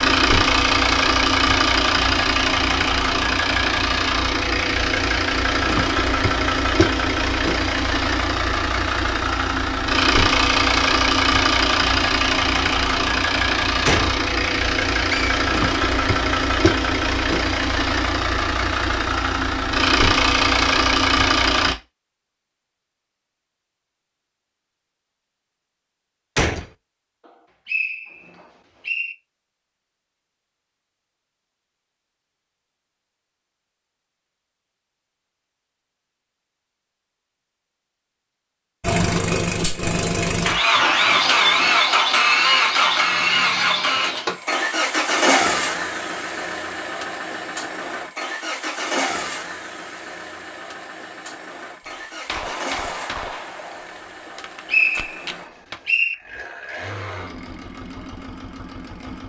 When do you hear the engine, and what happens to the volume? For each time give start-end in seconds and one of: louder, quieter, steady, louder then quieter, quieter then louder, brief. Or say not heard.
0.0-21.8 steady
38.8-59.2 quieter.